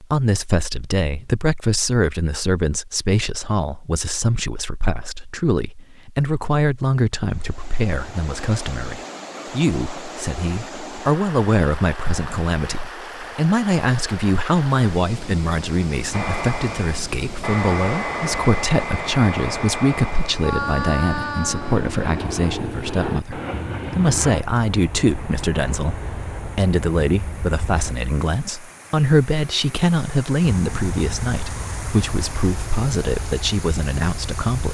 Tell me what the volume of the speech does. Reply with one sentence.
The volume of the speech stays about the same.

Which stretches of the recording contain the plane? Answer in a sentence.
You can hear the plane from 16.1 to 27.9 s and from 30.4 to 34.6 s.